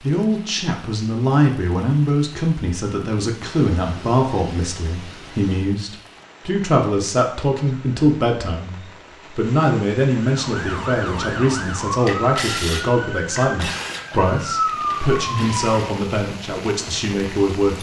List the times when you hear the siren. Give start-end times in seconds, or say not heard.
10.2-16.1.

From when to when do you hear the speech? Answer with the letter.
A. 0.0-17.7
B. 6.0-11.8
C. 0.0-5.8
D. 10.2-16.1
A.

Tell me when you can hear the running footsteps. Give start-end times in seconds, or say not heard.
not heard.